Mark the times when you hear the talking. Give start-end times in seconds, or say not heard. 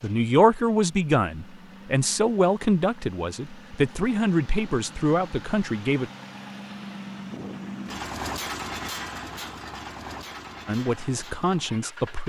0.0-6.1, 10.7-12.2.